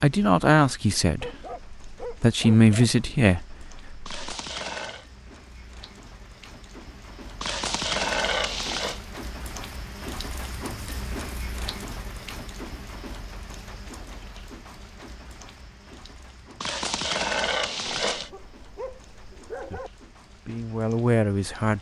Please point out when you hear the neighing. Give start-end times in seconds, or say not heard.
4.0-5.0, 7.4-9.0, 16.6-18.3.